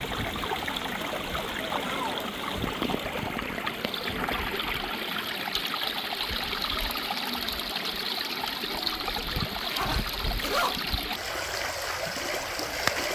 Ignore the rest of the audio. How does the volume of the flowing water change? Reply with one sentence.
The loudness of the flowing water stays about the same.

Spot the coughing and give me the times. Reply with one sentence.
The coughing can't be heard in this clip.